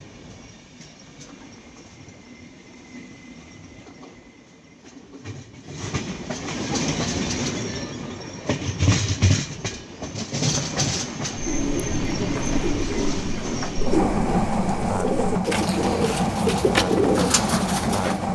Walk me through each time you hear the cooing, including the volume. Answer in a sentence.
The cooing can be heard from 11.3 to 18.2 s, getting louder.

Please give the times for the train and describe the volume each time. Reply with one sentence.
You can hear the train from 0.0 to 18.3 s, getting louder.